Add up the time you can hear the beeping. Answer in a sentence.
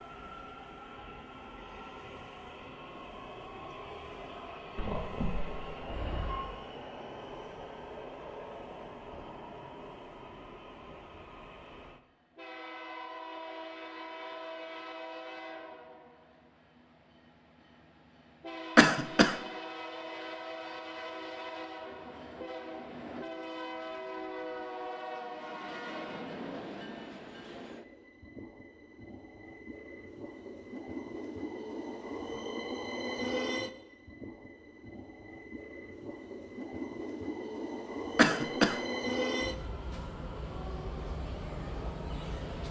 The beeping can be heard for 2 seconds in total.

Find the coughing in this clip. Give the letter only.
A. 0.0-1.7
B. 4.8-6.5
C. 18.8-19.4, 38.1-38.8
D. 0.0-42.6
C.